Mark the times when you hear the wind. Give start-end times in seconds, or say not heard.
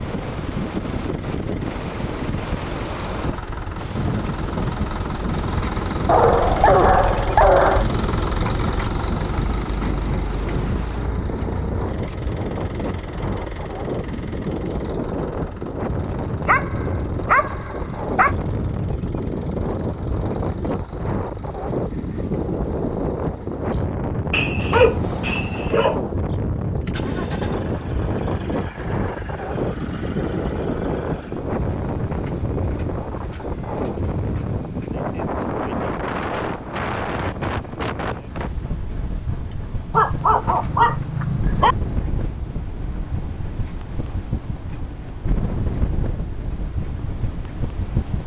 0.0-48.2.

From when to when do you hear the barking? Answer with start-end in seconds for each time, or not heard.
6.0-7.9, 16.4-18.4, 24.3-26.0, 39.9-41.8.